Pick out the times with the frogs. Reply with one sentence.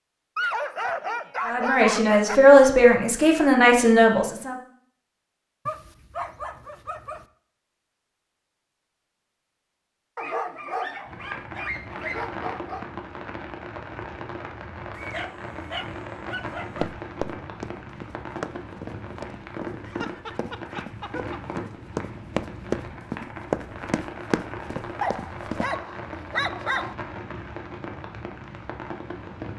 You can't hear the frogs here.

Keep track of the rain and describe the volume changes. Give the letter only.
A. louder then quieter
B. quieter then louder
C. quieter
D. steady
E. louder
D.